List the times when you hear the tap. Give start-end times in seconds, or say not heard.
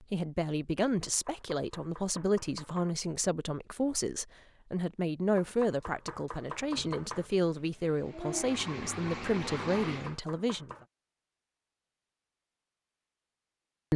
6.6-10.2.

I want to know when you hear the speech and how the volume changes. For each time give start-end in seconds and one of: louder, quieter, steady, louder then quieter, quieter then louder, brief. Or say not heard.
0.0-10.8 steady.